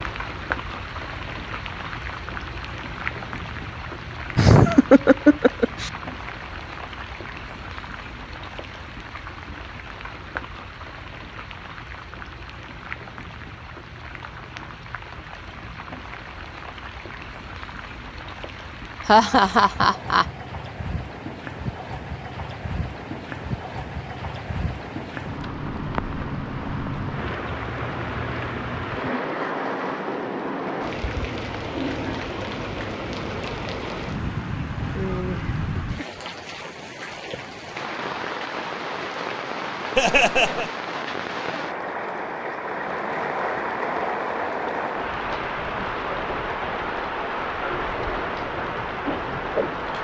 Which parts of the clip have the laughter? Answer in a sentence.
The laughter can be heard from 4.3 to 5.9 s, from 19.1 to 20.2 s and from 40.0 to 40.6 s.